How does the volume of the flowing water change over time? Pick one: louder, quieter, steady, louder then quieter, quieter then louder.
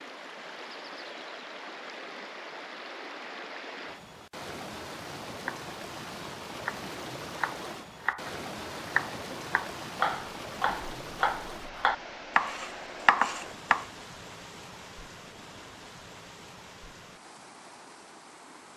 quieter.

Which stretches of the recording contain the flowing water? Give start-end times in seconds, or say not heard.
0.0-18.7.